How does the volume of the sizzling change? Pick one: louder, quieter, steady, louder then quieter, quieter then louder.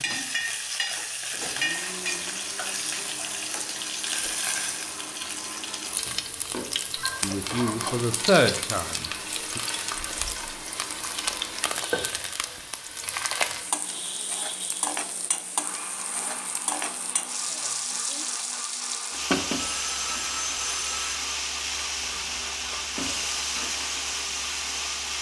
steady.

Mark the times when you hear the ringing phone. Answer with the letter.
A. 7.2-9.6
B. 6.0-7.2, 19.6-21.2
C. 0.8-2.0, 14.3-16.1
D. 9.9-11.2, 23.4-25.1
B.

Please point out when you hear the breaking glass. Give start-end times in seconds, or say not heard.
not heard.